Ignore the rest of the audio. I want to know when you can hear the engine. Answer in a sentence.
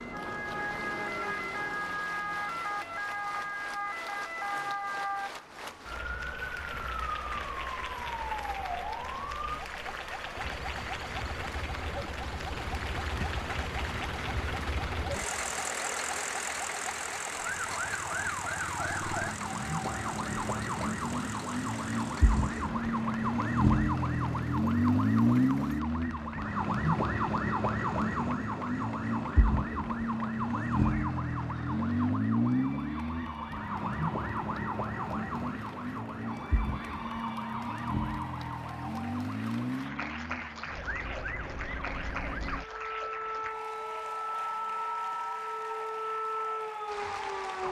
You can hear the engine from 10.3 to 25.8 s.